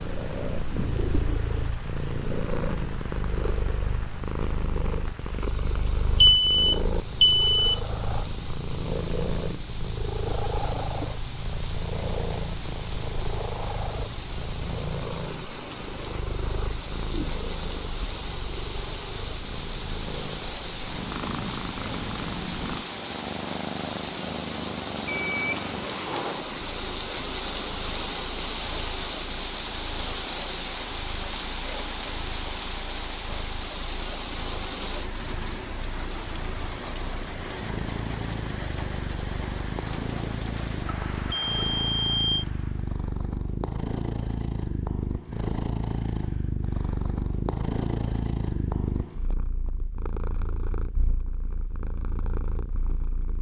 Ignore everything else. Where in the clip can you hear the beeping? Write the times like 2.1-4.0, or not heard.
6.2-7.8, 25.1-25.7, 41.3-42.5.